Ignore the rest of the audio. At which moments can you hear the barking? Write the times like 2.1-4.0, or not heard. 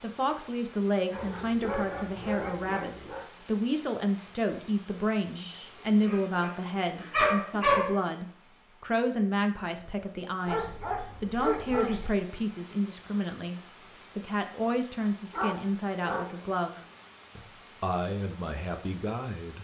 1.1-3.2, 5.3-8.1, 10.4-12.1, 15.3-16.4.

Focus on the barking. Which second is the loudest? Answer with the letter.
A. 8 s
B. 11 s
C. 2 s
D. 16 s
A.